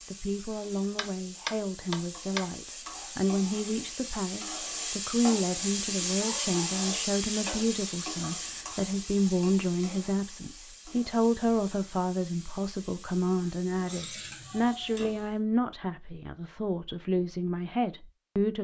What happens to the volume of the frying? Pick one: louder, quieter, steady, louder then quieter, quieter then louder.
louder then quieter.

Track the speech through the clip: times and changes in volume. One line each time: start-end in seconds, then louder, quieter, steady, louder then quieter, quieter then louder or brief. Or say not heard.
0.1-18.5 steady.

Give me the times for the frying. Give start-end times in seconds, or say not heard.
0.0-15.3.